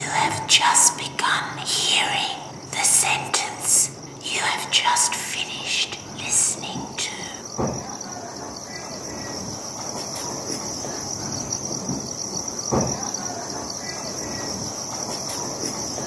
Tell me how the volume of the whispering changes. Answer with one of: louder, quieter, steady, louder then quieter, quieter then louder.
quieter.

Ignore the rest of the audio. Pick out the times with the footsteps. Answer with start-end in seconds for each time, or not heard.
not heard.